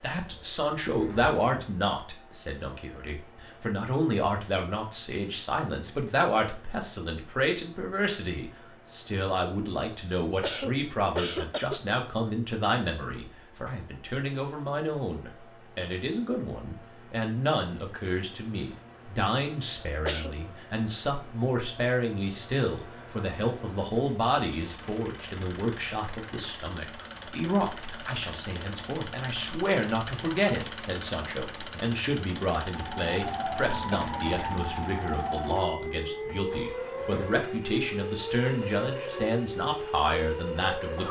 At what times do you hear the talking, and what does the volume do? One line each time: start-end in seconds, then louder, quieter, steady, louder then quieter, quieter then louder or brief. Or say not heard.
0.0-41.0 steady.